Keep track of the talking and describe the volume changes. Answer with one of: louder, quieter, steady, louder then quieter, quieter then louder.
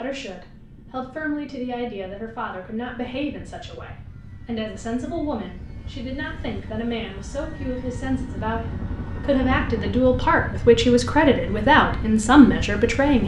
louder.